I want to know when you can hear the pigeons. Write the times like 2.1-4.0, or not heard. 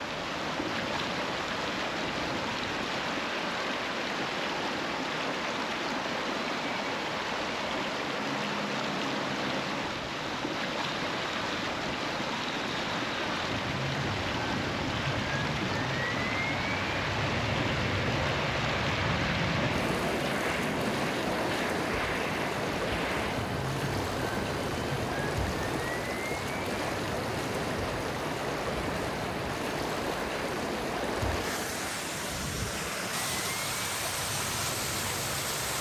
not heard.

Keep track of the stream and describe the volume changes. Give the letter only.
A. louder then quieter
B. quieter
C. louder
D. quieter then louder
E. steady
E.